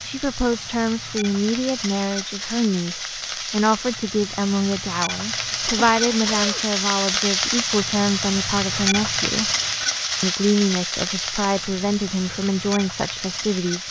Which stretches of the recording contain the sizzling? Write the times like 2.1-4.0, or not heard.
0.0-13.8.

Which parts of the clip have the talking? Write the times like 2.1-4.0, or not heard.
0.0-9.5, 10.2-13.8.